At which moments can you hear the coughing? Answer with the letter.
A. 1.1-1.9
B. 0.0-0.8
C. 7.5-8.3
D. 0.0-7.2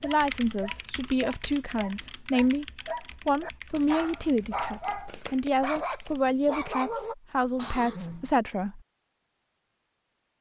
C.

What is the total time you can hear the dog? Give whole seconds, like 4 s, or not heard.
7 s.